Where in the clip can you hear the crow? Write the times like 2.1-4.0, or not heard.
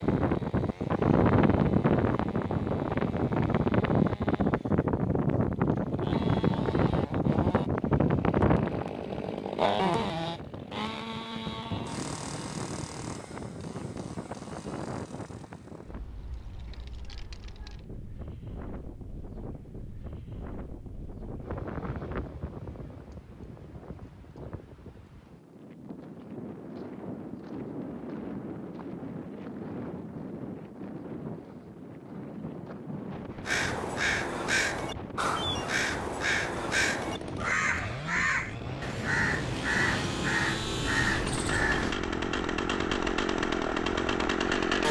33.4-42.0.